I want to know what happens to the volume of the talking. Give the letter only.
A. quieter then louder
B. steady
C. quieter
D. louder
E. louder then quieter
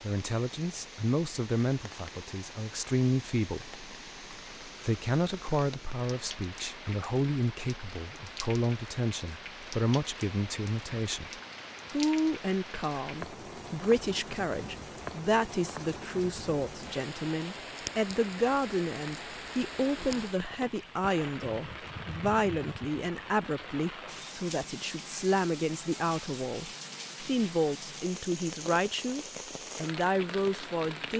B.